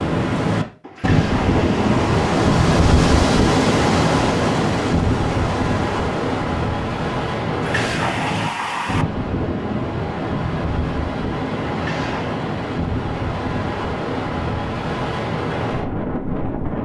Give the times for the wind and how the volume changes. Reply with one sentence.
You can hear the wind from 0.0 to 16.8 s, getting quieter.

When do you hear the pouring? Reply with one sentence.
You can hear the pouring from 0.8 to 2.2 s, from 7.5 to 9.1 s and from 11.7 to 12.3 s.